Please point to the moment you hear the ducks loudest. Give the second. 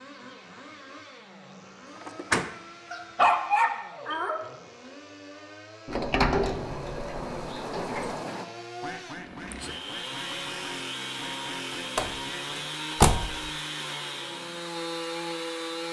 8 s.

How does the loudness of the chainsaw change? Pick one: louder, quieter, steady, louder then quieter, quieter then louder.
louder.